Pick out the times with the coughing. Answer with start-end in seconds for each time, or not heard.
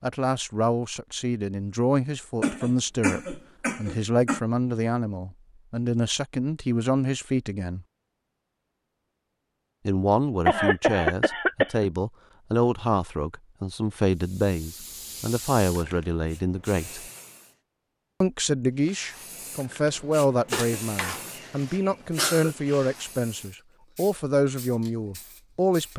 2.4-4.4, 10.4-11.9, 20.5-21.2, 21.9-22.5.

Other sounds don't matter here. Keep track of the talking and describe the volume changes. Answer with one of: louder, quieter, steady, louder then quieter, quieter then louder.
steady.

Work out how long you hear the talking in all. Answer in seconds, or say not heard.
23 s.